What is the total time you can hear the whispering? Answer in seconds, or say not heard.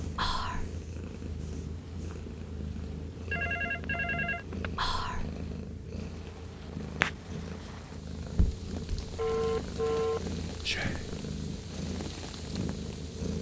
2 s.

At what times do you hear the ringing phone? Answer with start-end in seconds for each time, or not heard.
3.3-4.8, 8.3-10.2.